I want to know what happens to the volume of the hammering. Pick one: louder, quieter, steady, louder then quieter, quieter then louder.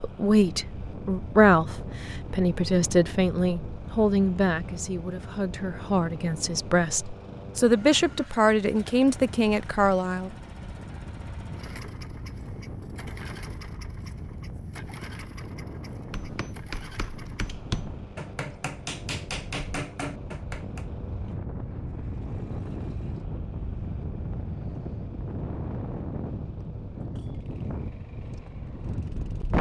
louder.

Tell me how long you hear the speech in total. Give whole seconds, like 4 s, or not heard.
10 s.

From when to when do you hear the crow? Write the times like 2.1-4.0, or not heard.
not heard.